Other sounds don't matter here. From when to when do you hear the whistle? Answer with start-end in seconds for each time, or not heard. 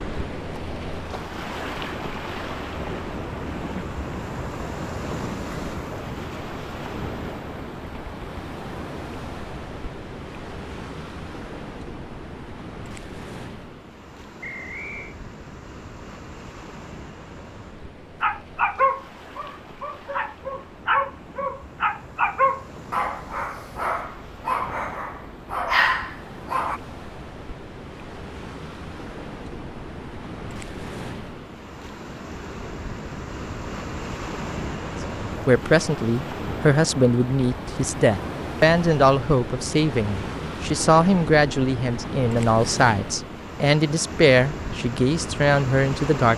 14.4-15.2.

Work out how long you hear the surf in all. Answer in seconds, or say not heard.
46 s.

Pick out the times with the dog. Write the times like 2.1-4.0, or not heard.
18.2-26.8.